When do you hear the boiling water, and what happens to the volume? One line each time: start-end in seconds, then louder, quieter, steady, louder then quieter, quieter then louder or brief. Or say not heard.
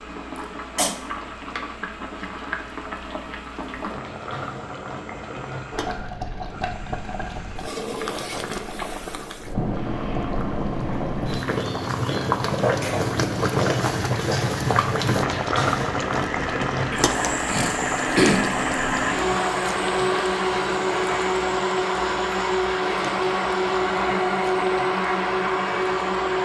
0.0-26.3 louder then quieter.